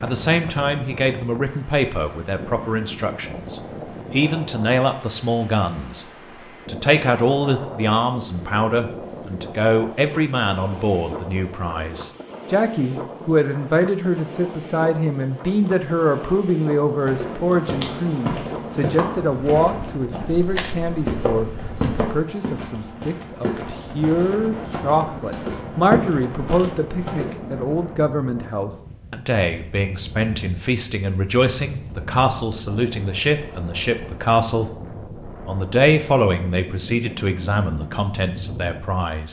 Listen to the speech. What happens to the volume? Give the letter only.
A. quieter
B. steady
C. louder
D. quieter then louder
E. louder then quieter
B.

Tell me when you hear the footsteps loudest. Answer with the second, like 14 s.
26 s.